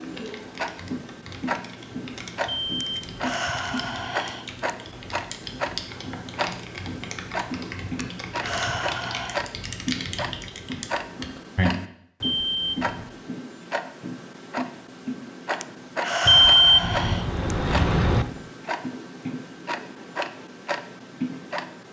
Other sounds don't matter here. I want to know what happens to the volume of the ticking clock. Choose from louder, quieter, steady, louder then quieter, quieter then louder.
steady.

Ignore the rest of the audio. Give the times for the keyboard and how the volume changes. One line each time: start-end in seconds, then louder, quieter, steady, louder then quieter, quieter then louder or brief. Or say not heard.
0.0-11.7 louder.